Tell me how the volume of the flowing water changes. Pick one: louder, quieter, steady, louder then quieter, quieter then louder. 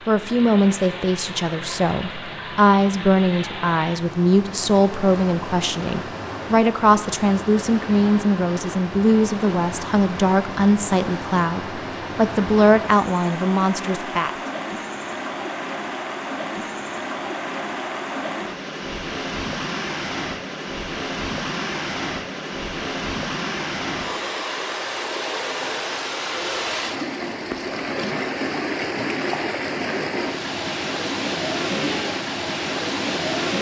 louder.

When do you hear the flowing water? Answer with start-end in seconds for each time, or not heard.
0.0-33.5.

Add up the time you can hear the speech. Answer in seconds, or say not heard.
14 s.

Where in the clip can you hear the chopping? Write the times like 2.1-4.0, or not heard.
not heard.